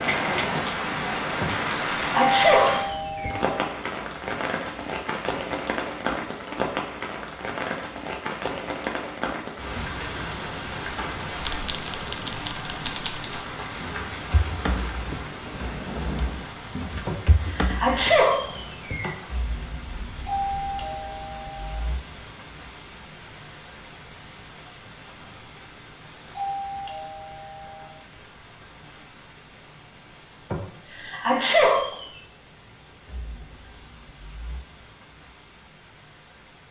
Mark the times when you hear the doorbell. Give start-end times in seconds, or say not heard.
2.0-3.5, 20.2-21.8, 26.2-27.9.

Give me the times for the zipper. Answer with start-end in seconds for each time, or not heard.
not heard.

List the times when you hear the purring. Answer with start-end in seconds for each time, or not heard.
not heard.